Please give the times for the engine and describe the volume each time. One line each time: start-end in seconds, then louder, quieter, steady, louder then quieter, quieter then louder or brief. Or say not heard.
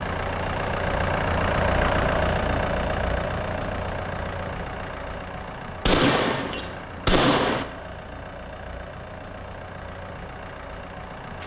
0.0-11.4 quieter.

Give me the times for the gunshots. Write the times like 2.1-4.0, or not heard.
5.8-7.7.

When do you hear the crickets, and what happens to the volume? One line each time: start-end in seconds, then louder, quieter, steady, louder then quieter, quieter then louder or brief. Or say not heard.
not heard.